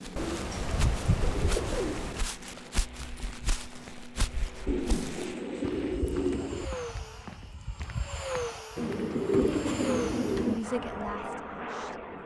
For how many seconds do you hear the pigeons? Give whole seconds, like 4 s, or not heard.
6 s.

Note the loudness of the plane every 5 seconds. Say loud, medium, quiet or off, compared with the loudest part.
medium, loud, loud.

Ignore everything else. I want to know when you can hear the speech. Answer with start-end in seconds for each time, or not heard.
10.4-12.2.